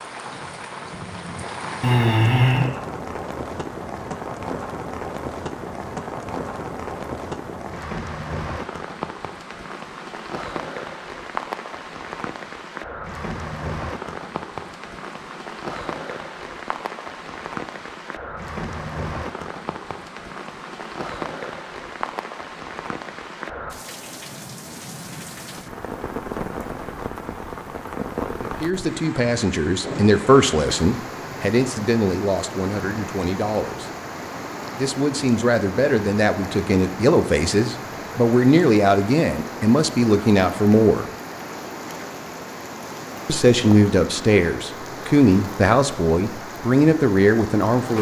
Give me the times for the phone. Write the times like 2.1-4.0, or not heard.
1.8-2.7.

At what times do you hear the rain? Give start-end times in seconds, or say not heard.
0.0-47.9.